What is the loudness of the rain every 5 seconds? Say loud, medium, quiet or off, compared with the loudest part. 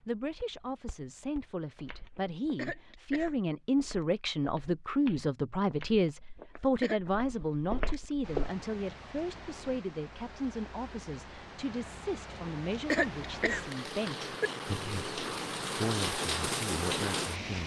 off, quiet, medium, loud.